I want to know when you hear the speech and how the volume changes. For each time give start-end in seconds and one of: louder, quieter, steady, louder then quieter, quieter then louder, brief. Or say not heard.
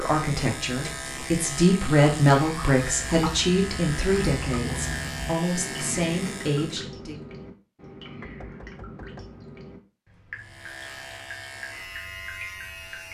0.0-7.2 louder then quieter.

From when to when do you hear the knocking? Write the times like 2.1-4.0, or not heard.
8.2-9.4.